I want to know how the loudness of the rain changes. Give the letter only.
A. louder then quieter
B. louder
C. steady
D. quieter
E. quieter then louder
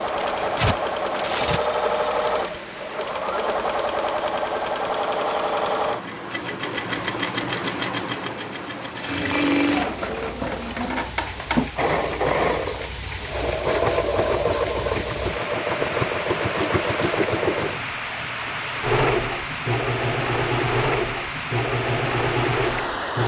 B.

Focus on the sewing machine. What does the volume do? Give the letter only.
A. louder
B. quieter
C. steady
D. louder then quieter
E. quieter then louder
C.